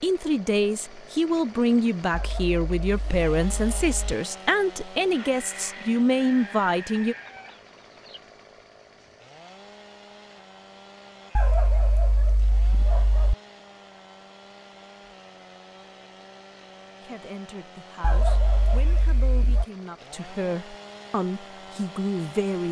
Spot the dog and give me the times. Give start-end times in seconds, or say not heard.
2.1-4.0, 11.3-13.3, 18.0-19.6.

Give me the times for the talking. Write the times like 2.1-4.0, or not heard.
0.0-7.2, 17.0-22.6.